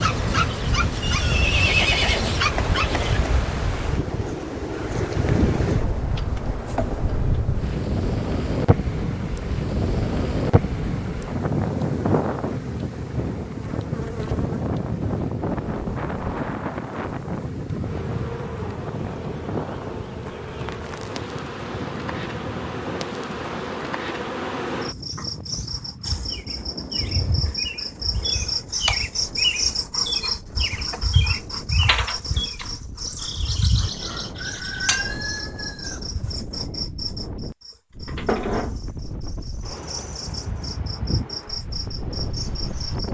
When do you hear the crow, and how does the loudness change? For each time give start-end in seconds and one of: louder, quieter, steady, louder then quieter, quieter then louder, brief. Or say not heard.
not heard.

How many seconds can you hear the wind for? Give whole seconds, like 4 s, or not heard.
43 s.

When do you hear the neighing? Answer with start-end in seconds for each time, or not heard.
1.0-2.4.